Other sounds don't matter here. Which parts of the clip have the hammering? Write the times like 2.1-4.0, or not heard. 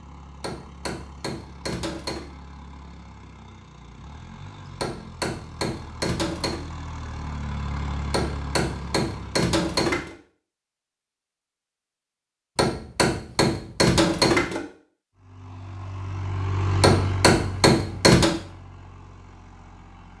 0.4-2.2, 4.8-6.6, 8.1-10.2, 12.6-14.6, 16.8-18.4.